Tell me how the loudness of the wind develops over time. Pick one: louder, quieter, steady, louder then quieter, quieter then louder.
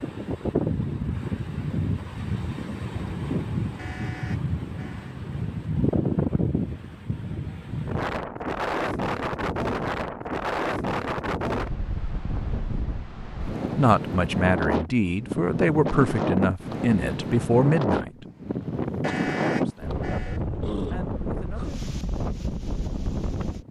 steady.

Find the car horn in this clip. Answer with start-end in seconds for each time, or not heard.
3.8-5.2, 19.0-20.4.